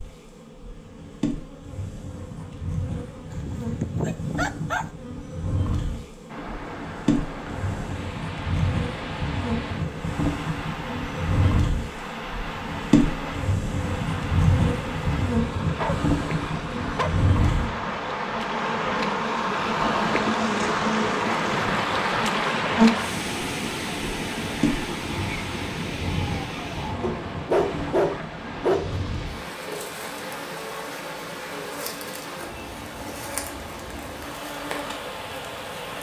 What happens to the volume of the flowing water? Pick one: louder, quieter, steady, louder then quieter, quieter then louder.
louder then quieter.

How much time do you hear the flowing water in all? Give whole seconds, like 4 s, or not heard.
30 s.